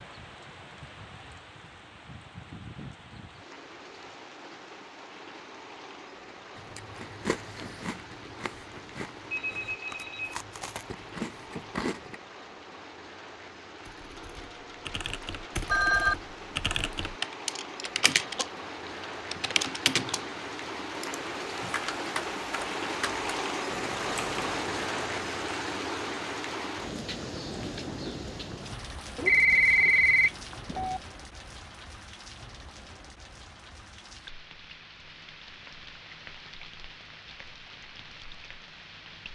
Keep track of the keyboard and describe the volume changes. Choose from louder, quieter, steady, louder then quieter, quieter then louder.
louder then quieter.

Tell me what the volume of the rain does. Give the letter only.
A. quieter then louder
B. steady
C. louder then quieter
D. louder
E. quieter
C.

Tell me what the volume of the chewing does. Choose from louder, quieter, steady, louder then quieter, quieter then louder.
quieter then louder.